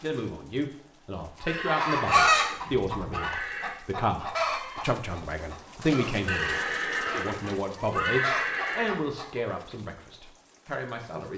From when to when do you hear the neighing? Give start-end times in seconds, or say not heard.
1.4-3.8, 6.2-9.0.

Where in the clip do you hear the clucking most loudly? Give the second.
2 s.